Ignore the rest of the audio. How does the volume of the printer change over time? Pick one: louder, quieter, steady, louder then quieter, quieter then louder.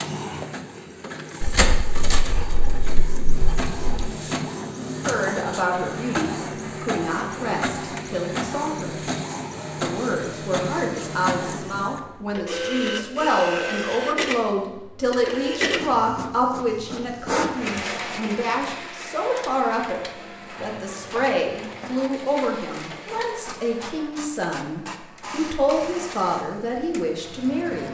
quieter.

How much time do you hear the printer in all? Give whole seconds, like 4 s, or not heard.
28 s.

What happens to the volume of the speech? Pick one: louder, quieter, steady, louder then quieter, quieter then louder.
steady.